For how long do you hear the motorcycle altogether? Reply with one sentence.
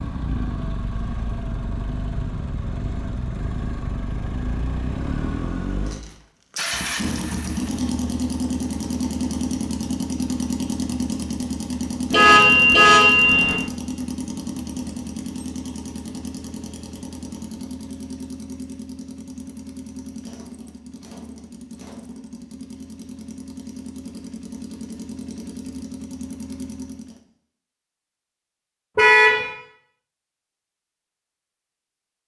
The motorcycle can be heard for 27 seconds in total.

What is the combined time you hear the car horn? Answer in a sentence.
You can hear the car horn for 2 seconds altogether.